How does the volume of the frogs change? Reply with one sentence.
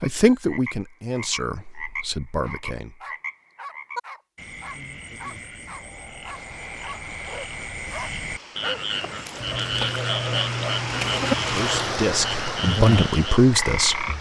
The volume of the frogs goes up.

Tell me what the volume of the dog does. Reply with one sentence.
The loudness of the dog goes up.